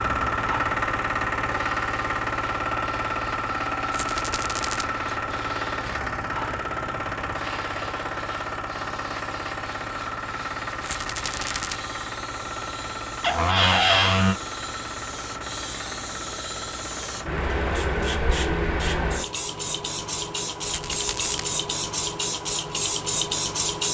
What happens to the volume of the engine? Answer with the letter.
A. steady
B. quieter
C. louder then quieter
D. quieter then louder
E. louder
B.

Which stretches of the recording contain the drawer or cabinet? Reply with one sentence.
You can hear the drawer or cabinet from 13.2 to 14.3 s.